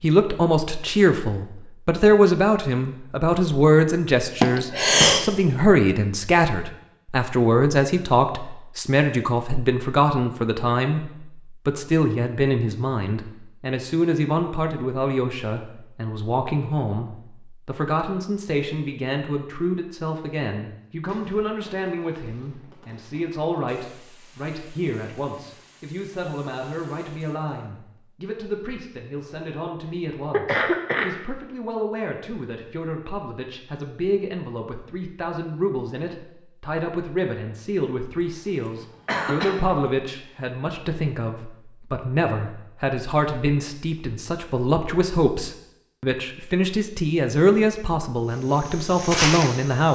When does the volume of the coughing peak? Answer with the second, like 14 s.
5 s.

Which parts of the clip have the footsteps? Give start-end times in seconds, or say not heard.
48.1-49.9.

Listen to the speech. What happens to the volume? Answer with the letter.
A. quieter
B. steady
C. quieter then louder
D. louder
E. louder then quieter
C.